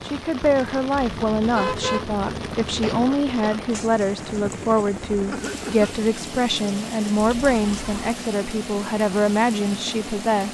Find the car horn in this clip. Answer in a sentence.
You can hear the car horn from 1.1 to 3.0 s and from 7.2 to 8.2 s.